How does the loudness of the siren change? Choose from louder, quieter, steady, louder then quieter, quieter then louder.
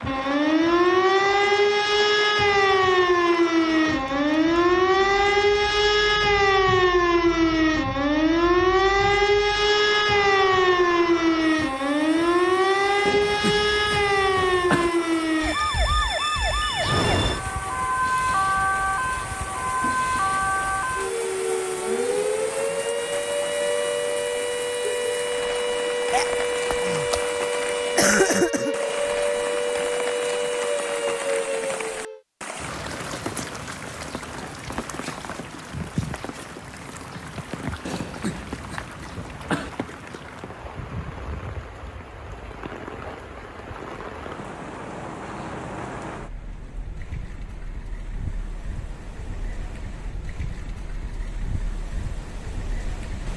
quieter.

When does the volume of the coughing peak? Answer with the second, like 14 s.
28 s.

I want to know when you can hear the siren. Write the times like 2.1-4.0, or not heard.
0.0-32.2.